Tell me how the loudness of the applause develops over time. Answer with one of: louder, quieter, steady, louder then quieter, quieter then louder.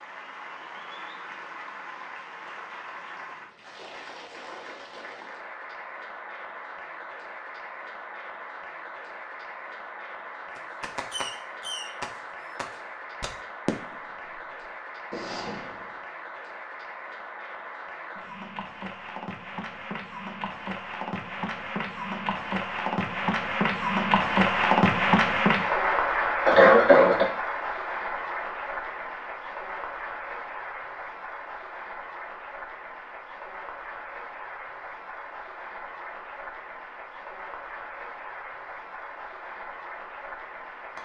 louder then quieter.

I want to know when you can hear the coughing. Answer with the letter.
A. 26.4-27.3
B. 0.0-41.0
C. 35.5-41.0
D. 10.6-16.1
A.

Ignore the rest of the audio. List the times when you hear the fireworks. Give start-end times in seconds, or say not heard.
10.6-16.1.